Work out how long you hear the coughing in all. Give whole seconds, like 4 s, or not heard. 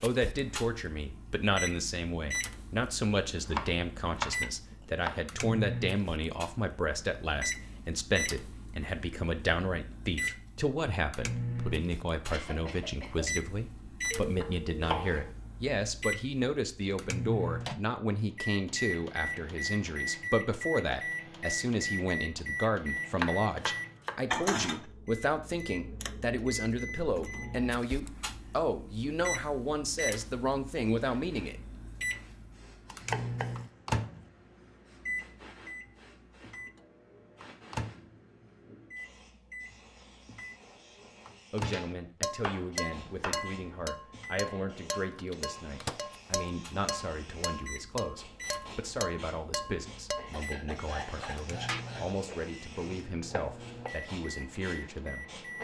3 s.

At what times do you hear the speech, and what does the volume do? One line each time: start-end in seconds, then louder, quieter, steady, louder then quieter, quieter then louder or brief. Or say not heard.
0.0-31.6 steady
41.5-55.4 steady.